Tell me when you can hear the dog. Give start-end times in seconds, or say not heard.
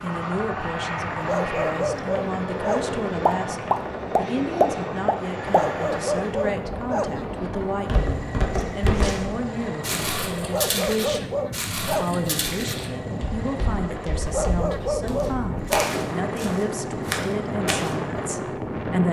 1.2-3.0, 5.5-7.3, 10.4-12.2, 14.2-16.0.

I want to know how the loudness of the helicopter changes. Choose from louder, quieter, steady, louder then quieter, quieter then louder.
quieter.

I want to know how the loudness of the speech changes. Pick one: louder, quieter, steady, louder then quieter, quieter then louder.
steady.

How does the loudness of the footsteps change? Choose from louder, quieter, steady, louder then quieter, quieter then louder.
quieter then louder.